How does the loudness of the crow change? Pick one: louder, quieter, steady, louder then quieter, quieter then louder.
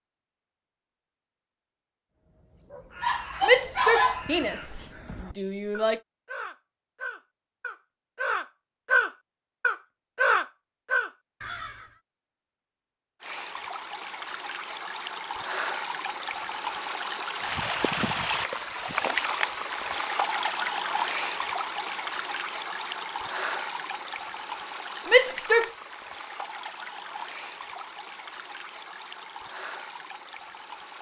louder.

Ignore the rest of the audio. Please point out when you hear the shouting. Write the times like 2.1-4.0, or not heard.
3.4-6.0, 25.1-25.7.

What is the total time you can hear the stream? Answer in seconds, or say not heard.
18 s.